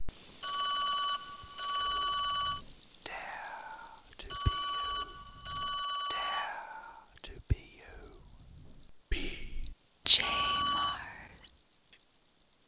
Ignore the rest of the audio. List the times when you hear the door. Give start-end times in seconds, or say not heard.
not heard.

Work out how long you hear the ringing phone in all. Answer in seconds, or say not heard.
5 s.